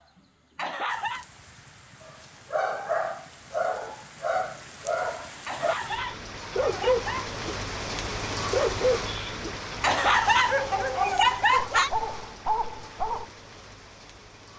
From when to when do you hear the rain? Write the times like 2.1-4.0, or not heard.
0.0-14.5.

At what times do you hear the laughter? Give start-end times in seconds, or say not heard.
0.6-1.2, 5.5-7.3, 9.8-11.9.